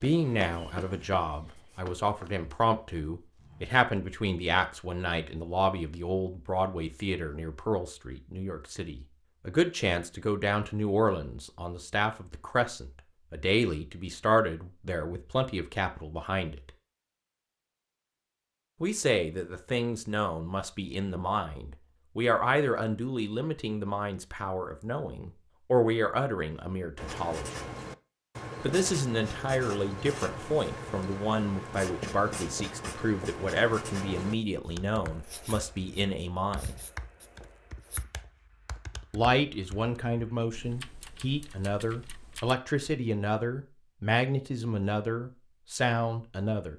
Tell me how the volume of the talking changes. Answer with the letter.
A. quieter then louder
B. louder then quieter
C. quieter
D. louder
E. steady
E.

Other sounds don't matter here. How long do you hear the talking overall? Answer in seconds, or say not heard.
41 s.